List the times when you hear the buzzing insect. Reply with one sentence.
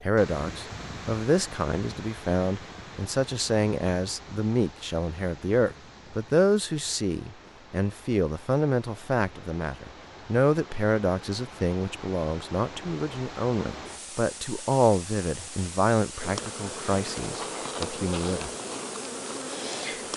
You can hear the buzzing insect from 16.1 to 20.1 s.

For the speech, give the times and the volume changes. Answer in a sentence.
The speech can be heard from 0.0 to 18.5 s, at a steady volume.